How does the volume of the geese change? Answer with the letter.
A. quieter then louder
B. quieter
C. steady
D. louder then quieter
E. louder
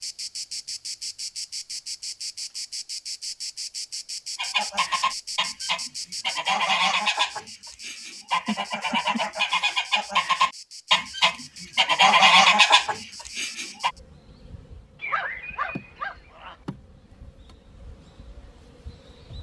E.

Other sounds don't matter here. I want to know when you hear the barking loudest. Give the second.
15 s.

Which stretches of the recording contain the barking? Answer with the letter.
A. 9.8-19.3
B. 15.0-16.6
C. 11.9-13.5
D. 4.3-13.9
B.